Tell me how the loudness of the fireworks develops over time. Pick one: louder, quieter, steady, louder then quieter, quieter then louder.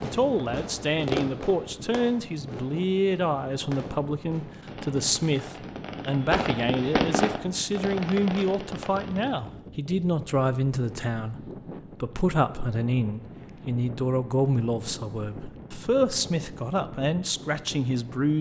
quieter then louder.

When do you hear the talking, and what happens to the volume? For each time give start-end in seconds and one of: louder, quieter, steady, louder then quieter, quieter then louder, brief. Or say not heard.
0.0-18.3 steady.